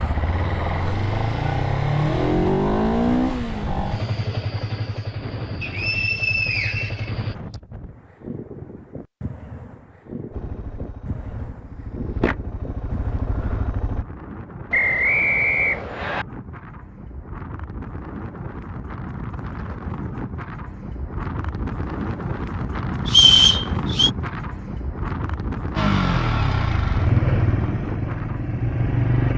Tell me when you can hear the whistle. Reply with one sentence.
You can hear the whistle from 5.6 to 7.5 s, from 14.7 to 16.2 s and from 23.1 to 24.1 s.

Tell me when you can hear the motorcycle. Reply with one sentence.
The motorcycle can be heard from 0.0 to 7.3 s, from 10.3 to 14.1 s and from 25.8 to 29.3 s.